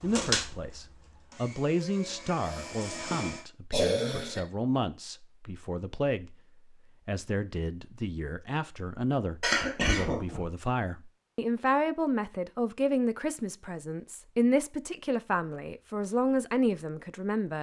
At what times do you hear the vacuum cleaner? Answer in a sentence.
You can hear the vacuum cleaner from 0.0 to 3.5 s.